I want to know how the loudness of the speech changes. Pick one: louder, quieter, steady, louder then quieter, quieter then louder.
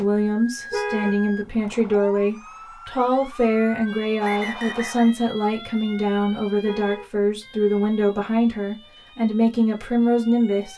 steady.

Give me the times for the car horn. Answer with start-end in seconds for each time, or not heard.
0.7-1.9, 6.7-7.7.